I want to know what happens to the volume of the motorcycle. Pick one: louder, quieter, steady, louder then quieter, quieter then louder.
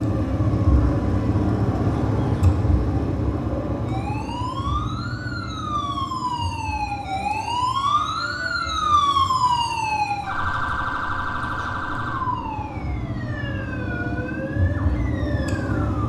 quieter then louder.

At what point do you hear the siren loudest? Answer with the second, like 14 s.
9 s.